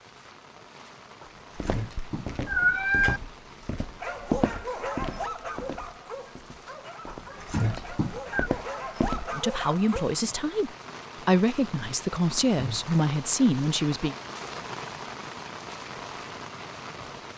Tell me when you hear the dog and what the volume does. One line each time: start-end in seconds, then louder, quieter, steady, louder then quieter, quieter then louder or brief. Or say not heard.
4.0-10.2 quieter then louder.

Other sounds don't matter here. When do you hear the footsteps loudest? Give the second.
4 s.